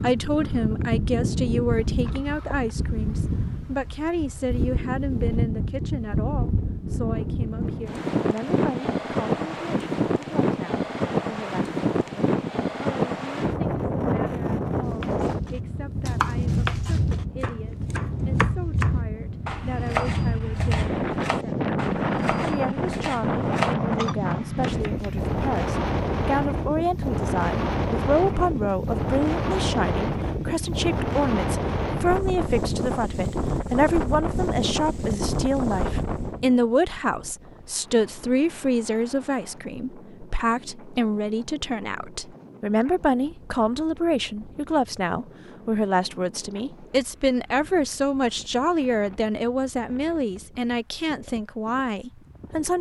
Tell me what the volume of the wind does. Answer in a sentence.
The loudness of the wind goes down.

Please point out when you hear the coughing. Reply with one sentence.
You can't hear the coughing here.